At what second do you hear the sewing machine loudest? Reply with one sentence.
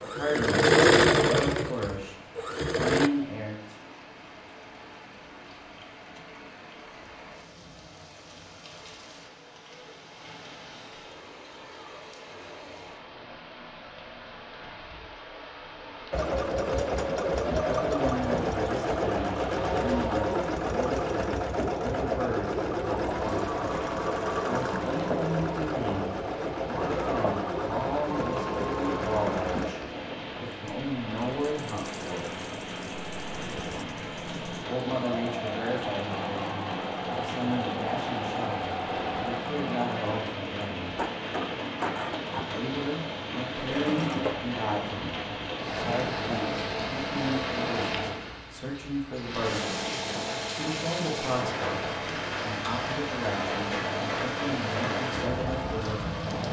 The volume of the sewing machine peaks at 1 second.